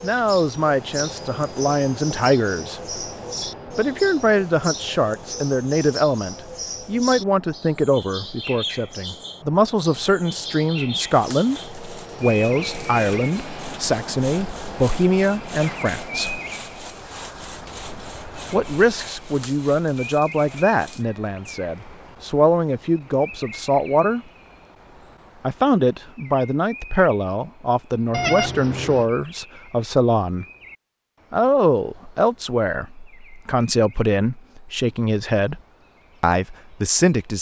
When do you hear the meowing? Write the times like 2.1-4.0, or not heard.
28.1-29.1.